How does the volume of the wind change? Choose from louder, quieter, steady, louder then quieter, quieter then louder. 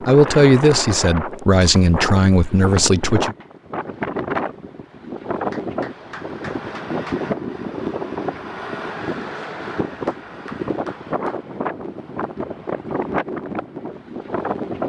steady.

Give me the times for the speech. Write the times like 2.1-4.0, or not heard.
0.1-3.4.